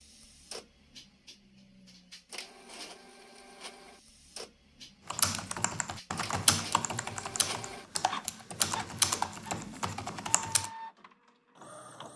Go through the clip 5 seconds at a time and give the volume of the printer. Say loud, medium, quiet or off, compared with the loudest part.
medium, loud, loud.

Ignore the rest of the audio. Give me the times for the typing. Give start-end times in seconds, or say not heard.
5.1-10.7.